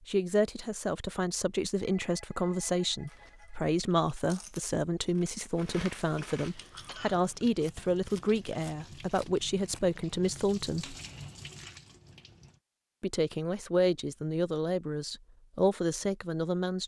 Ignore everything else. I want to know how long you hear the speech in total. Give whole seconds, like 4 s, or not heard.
15 s.